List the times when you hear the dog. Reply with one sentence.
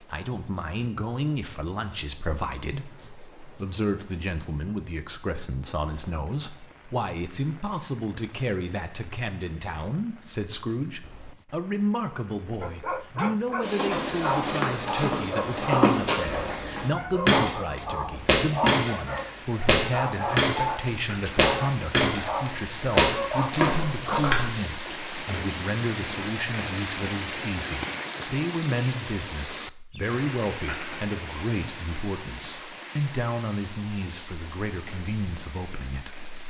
You can hear the dog from 12.6 to 24.2 s.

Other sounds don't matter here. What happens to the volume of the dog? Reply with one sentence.
The volume of the dog stays about the same.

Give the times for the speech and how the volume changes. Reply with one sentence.
The speech can be heard from 0.0 to 36.3 s, at a steady volume.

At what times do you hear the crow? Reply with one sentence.
The crow can't be heard in this clip.